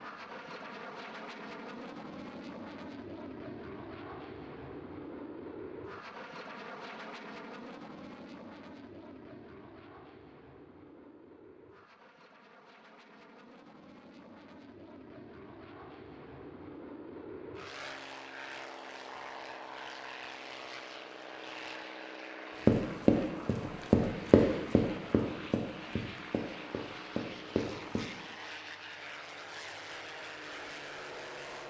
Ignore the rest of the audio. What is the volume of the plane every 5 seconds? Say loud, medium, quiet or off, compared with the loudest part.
loud, loud, medium, loud, loud, loud, loud.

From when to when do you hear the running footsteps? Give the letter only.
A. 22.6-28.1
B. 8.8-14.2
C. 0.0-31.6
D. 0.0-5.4
A.